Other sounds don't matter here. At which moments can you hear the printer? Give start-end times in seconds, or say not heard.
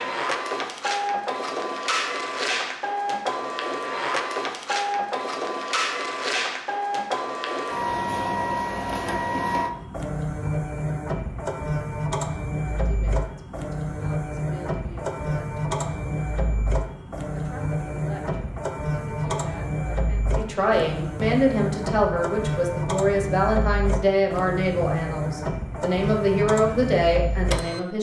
0.0-27.8.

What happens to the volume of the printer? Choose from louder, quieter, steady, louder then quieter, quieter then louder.
steady.